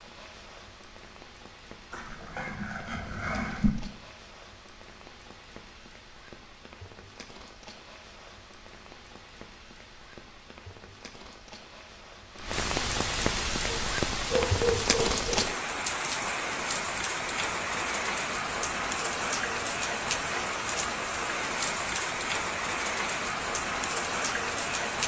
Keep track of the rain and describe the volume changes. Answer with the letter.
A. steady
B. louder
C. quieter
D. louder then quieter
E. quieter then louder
B.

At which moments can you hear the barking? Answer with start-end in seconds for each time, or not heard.
1.9-3.7, 13.7-15.5.